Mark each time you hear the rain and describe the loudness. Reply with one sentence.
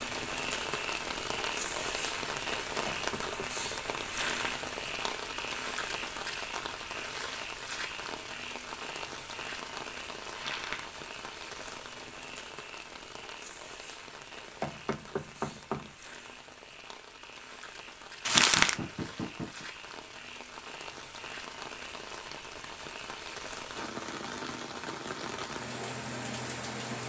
The rain can be heard from 0.0 to 27.0 s, getting quieter then louder.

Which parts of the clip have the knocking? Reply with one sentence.
You can hear the knocking from 2.7 to 3.7 s, from 14.4 to 15.9 s and from 18.3 to 19.6 s.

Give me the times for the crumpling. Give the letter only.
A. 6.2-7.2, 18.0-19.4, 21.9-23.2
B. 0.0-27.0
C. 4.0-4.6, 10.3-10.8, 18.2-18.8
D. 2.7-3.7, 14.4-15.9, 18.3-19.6
C.